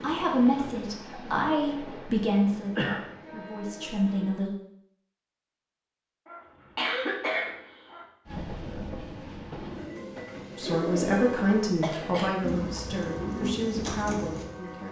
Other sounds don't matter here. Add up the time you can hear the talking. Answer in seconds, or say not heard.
9 s.